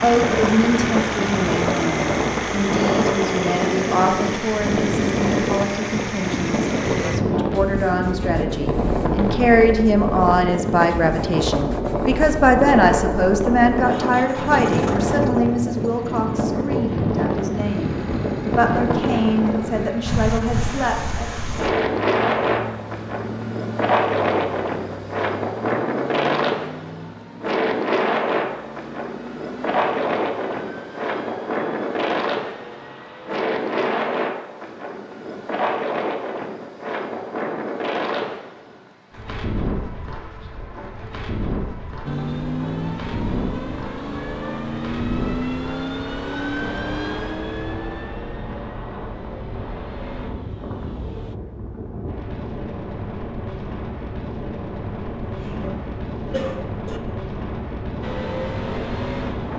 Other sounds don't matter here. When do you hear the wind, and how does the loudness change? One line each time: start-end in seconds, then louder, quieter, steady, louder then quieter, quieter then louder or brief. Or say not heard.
0.0-59.5 quieter.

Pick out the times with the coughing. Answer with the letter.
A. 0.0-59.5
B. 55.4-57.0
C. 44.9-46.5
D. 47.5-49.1
B.